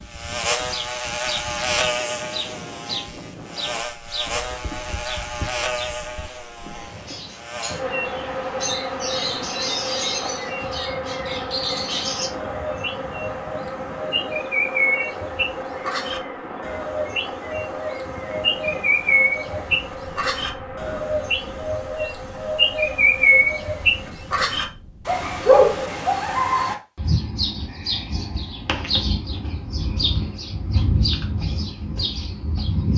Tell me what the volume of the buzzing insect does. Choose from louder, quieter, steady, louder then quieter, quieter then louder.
quieter.